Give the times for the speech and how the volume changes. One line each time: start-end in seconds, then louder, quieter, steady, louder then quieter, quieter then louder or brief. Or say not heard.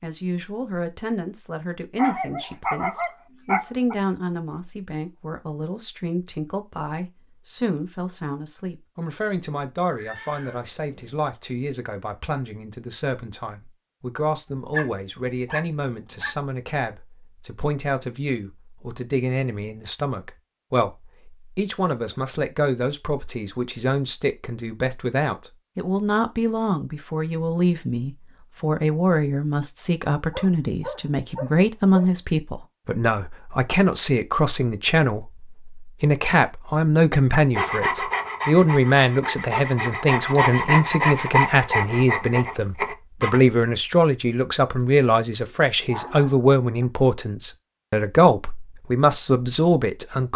0.0-50.3 louder.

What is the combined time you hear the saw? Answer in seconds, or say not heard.
6 s.